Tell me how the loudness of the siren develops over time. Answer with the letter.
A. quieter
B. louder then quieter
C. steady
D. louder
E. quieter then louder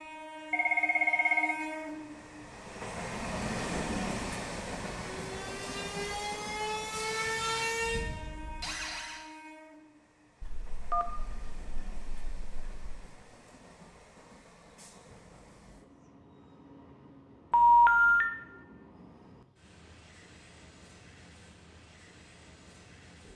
B.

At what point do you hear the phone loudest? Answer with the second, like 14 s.
18 s.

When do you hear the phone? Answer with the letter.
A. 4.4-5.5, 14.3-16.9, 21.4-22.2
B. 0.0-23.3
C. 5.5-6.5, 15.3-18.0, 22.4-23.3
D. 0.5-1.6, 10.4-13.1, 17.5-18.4
D.